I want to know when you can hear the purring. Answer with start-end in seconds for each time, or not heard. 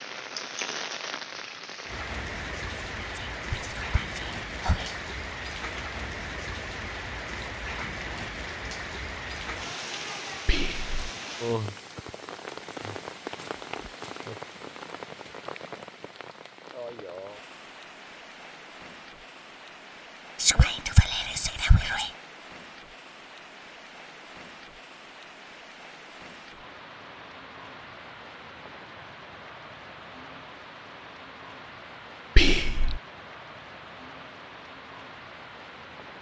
not heard.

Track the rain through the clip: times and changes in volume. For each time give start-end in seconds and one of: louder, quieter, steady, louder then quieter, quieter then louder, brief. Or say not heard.
0.0-36.1 quieter.